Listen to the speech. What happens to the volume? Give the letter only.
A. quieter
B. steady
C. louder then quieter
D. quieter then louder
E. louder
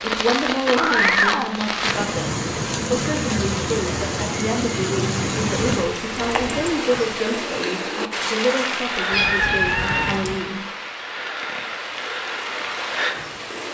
B.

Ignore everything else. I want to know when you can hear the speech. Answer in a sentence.
The speech can be heard from 0.0 to 10.6 s.